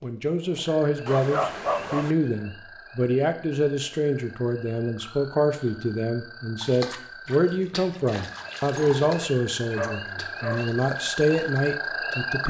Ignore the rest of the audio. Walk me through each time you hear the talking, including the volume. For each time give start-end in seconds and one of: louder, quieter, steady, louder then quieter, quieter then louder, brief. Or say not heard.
0.0-12.4 steady.